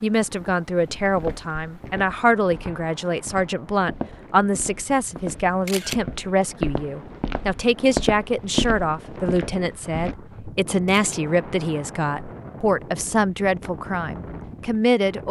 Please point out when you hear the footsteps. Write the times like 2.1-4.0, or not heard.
0.9-10.2.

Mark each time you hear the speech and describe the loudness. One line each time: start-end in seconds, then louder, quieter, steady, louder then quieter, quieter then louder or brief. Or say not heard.
0.0-15.2 steady.